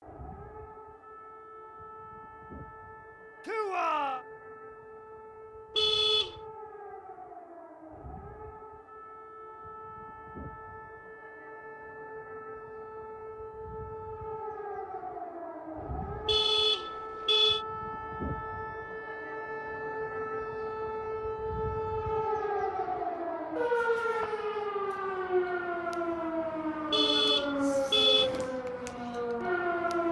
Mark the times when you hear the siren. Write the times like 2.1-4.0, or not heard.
0.0-30.0.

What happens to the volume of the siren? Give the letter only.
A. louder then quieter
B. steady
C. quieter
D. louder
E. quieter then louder
D.